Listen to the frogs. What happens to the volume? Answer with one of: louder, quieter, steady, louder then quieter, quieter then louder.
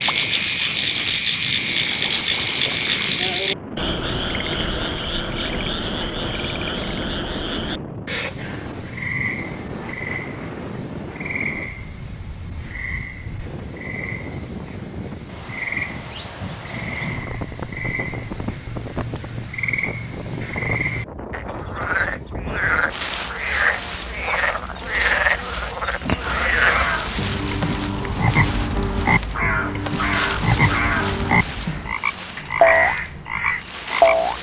quieter then louder.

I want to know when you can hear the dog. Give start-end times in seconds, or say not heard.
not heard.